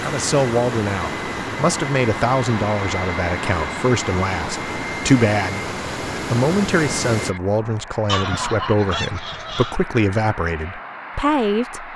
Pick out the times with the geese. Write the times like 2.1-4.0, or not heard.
8.1-9.8.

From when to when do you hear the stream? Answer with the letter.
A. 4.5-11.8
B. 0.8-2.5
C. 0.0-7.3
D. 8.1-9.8
C.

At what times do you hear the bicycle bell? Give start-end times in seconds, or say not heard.
not heard.